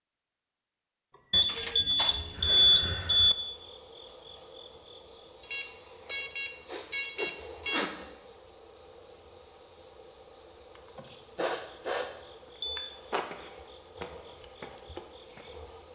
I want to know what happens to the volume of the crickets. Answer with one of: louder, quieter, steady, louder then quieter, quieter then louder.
steady.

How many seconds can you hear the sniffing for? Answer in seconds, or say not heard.
3 s.